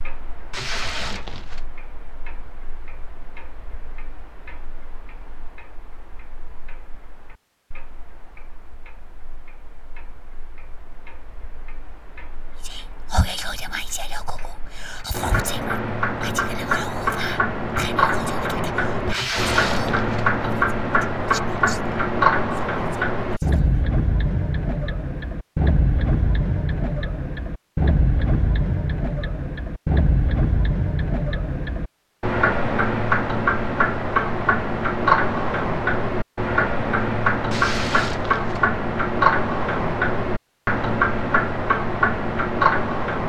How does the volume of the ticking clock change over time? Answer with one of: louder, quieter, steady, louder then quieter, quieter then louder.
louder.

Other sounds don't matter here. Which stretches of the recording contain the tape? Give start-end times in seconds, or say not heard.
0.5-1.6, 19.1-20.3, 37.5-38.6.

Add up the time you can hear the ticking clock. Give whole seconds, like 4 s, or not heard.
43 s.